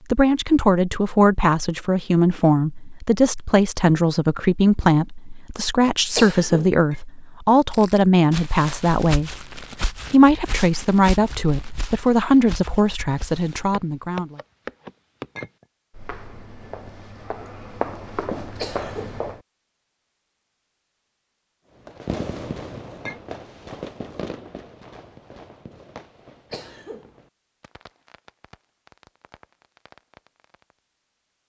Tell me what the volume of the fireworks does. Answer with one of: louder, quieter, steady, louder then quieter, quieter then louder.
quieter.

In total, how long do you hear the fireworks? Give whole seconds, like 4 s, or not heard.
9 s.